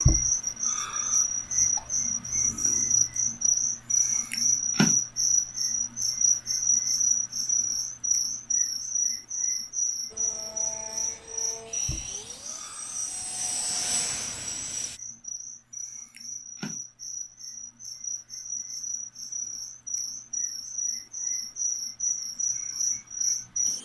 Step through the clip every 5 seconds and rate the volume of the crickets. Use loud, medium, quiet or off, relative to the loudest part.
loud, loud, medium, quiet, medium.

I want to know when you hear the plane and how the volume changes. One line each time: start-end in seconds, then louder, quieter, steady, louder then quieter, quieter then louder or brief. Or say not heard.
10.1-15.0 louder.